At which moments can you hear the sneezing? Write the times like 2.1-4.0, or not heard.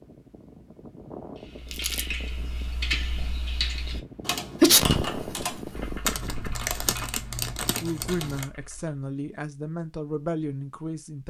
4.6-6.0.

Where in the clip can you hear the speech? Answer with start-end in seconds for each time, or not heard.
7.8-11.2.